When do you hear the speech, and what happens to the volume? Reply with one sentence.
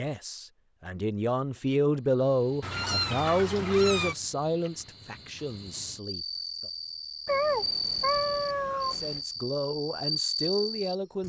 The speech can be heard from 0.0 to 6.7 s, getting louder then quieter; and briefly from 8.9 to 11.2 s.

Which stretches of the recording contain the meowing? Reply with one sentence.
The meowing can be heard from 2.6 to 4.2 s and from 7.2 to 9.2 s.